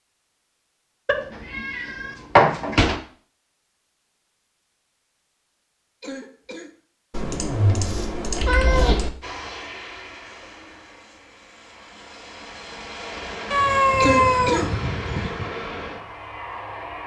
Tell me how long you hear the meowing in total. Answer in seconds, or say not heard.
6 s.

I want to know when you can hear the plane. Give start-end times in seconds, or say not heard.
9.2-17.0.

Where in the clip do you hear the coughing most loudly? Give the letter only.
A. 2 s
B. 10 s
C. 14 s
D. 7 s
C.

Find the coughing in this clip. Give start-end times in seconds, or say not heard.
6.0-6.8, 14.0-14.7.